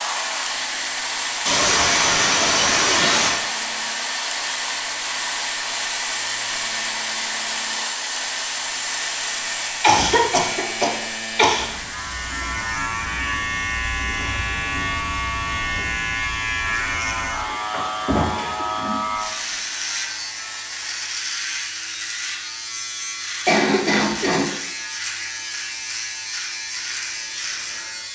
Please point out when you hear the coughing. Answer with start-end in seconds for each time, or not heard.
1.4-3.4, 9.8-11.7, 23.4-24.4.